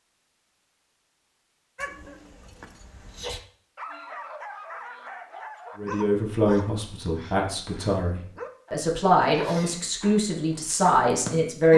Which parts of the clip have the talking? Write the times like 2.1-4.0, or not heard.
5.8-11.7.